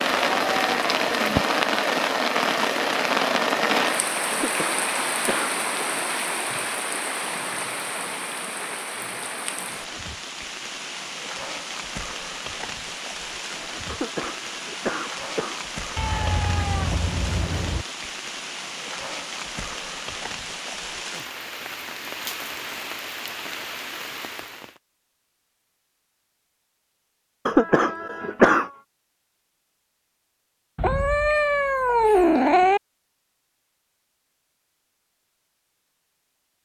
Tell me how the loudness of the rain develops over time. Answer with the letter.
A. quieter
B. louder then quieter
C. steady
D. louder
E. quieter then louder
A.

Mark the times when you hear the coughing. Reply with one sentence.
The coughing can be heard from 4.3 to 5.6 s, from 13.8 to 15.7 s and from 27.4 to 28.7 s.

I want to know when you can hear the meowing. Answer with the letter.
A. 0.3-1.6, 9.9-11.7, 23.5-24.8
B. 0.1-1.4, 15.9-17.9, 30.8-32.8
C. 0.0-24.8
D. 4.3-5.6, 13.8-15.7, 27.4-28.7
B.